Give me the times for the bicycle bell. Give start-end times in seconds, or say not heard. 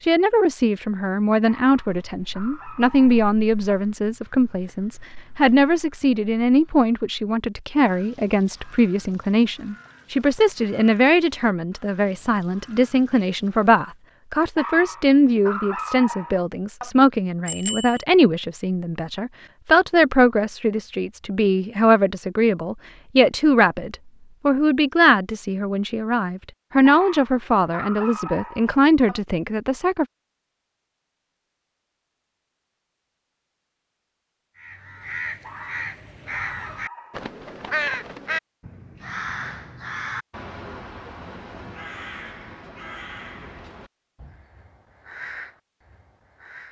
17.4-18.1.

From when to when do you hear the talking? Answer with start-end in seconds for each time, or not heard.
0.0-30.1.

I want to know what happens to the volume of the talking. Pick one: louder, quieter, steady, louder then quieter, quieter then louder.
steady.